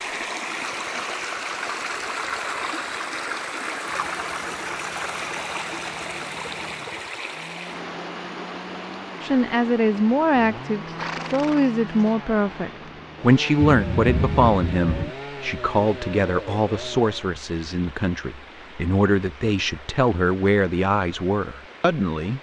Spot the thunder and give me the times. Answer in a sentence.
You can hear the thunder from 13.6 to 15.1 s.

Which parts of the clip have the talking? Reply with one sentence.
The talking can be heard from 9.2 to 22.3 s.